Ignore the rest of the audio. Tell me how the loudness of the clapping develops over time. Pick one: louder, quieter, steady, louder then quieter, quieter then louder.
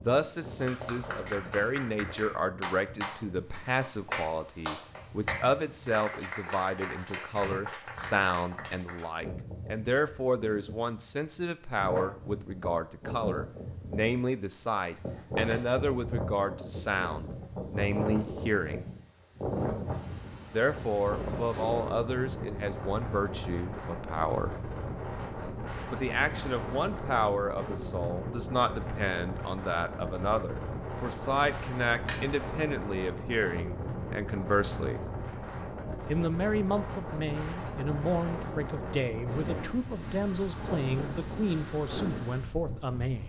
louder then quieter.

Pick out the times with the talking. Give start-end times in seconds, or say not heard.
0.1-18.9, 20.5-24.6, 25.9-35.0, 36.0-43.2.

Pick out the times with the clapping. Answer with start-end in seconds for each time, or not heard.
0.6-9.1.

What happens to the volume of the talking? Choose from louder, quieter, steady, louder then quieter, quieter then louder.
steady.